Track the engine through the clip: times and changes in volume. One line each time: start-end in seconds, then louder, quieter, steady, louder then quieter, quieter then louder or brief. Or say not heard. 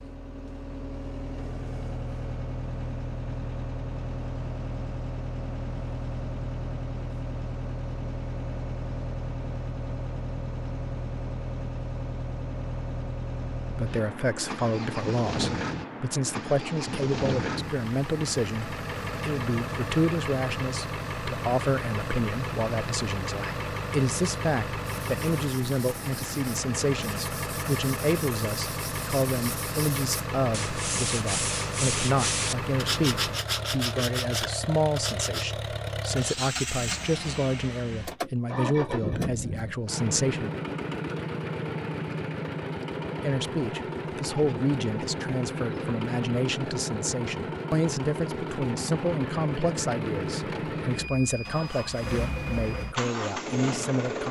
0.0-54.2 steady.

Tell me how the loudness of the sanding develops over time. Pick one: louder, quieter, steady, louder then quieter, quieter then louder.
louder.